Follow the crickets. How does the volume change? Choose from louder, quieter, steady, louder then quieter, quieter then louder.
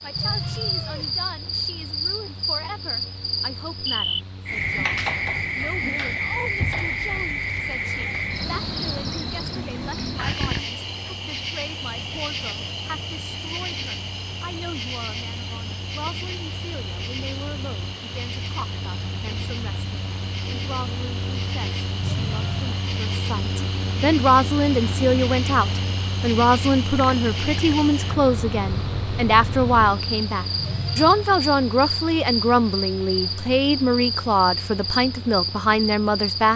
quieter then louder.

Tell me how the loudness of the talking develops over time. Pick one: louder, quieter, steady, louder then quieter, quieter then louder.
louder.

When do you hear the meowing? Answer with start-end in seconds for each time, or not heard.
0.1-1.2, 22.0-22.8, 30.6-31.3.